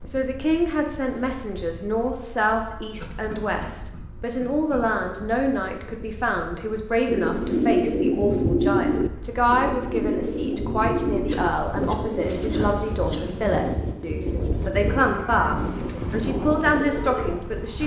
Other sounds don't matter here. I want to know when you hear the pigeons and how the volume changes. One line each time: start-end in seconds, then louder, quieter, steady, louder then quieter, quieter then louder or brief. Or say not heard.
7.0-17.4 quieter.